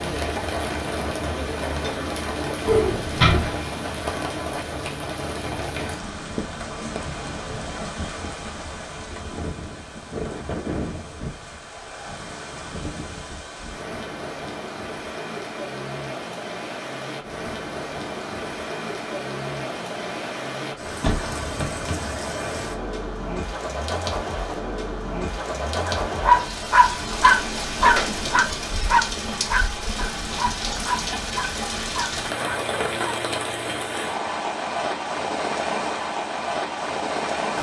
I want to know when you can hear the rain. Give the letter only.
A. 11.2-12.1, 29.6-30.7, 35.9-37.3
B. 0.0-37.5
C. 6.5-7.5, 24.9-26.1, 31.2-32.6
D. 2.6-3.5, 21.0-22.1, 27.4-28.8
B.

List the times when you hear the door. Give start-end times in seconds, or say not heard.
2.6-3.5, 21.0-22.1, 27.4-28.8.